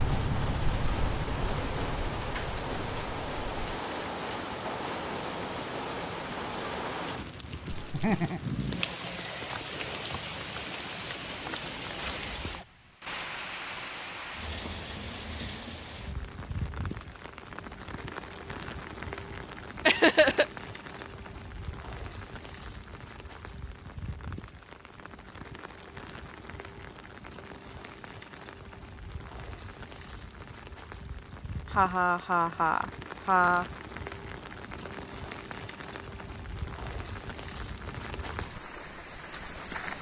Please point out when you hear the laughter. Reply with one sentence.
The laughter can be heard from 7.7 to 8.4 s, from 19.9 to 20.4 s and from 31.3 to 33.6 s.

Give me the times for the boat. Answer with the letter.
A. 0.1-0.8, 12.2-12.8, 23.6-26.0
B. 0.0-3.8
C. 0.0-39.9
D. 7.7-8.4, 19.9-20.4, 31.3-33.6
B.